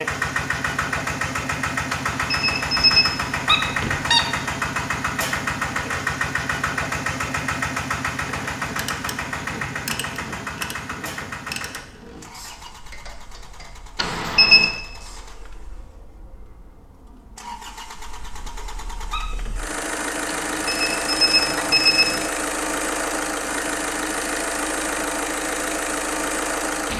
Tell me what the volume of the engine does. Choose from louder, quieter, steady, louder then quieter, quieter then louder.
quieter then louder.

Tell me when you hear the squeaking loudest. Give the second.
4 s.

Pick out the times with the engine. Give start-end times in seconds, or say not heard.
0.0-26.9.